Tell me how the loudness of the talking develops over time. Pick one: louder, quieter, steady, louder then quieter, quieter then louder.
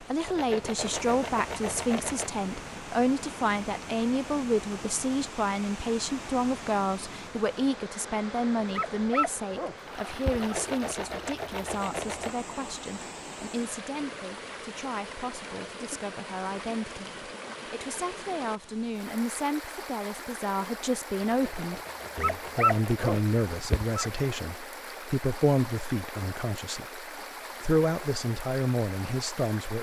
quieter then louder.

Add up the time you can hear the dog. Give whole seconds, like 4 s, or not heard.
4 s.